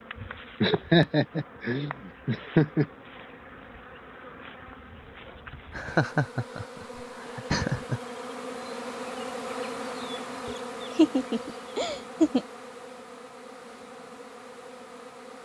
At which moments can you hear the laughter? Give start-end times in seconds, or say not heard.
0.6-2.9, 5.8-8.0, 10.4-12.4.